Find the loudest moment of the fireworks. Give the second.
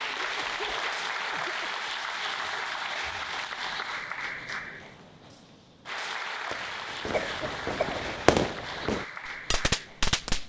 8 s.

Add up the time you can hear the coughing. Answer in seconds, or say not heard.
2 s.